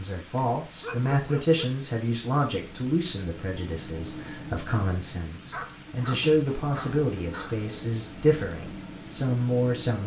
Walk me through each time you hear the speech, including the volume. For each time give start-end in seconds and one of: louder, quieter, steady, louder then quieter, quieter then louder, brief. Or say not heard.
0.0-10.0 quieter then louder.